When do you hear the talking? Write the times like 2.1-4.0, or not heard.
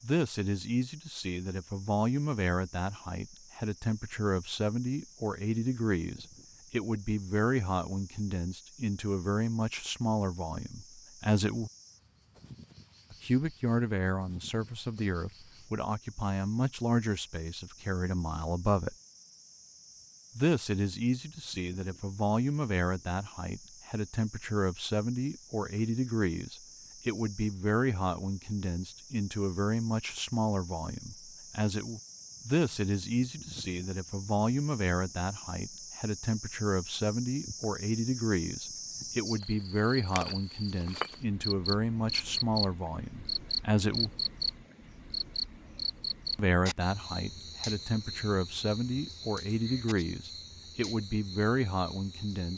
0.0-11.7, 13.1-18.9, 20.4-44.1, 46.4-52.5.